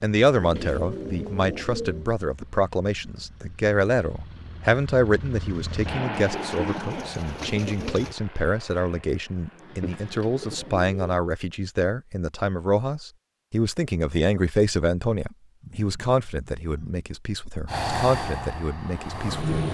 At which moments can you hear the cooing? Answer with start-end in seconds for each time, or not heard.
0.4-2.1, 6.3-8.2, 9.8-11.3, 15.6-17.1.